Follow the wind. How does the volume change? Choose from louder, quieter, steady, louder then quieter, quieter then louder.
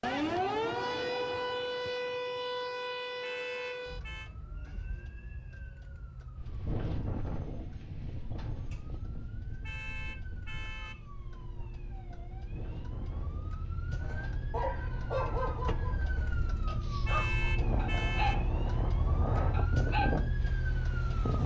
quieter then louder.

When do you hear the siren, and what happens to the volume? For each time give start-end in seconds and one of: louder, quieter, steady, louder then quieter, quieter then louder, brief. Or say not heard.
0.0-21.4 quieter then louder.